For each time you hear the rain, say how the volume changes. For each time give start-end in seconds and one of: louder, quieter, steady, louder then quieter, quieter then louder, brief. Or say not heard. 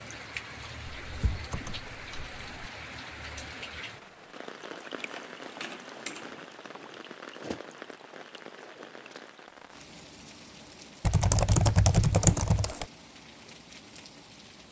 0.0-14.6 quieter.